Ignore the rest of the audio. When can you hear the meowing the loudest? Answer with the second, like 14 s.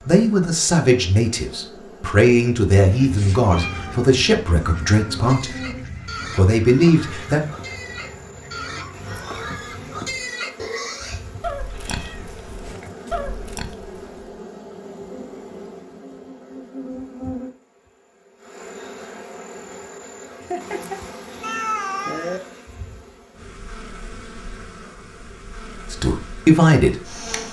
22 s.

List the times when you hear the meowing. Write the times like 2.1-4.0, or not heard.
3.1-5.0, 11.2-13.2, 20.4-22.4.